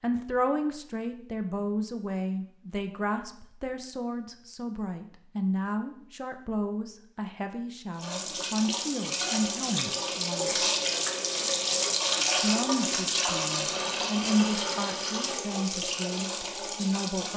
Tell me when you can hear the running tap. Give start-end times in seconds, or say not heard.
8.0-17.3.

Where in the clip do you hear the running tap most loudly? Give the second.
12 s.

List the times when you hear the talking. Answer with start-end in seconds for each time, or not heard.
0.0-10.5, 12.4-17.3.